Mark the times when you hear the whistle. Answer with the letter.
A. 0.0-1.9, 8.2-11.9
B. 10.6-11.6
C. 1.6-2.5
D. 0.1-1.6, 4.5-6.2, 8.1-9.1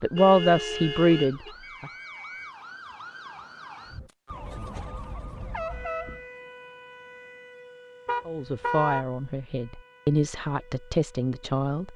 C.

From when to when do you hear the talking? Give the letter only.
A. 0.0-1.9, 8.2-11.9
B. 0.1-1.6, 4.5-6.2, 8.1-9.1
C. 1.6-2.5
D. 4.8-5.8
A.